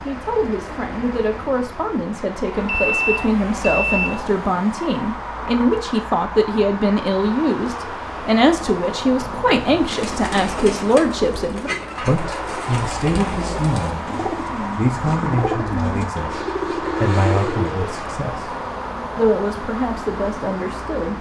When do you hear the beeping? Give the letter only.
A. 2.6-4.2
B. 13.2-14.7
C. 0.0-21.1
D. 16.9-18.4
A.